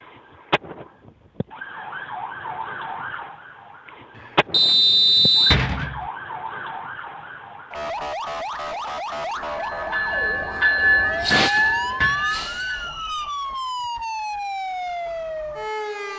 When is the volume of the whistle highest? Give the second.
5 s.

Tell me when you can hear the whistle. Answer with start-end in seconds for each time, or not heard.
4.5-5.7, 12.4-13.4.